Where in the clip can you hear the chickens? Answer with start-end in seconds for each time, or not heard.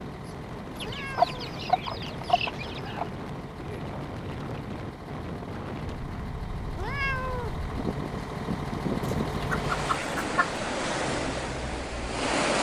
0.8-3.0, 9.0-10.5.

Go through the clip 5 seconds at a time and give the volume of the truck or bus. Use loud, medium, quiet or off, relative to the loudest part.
medium, loud, medium.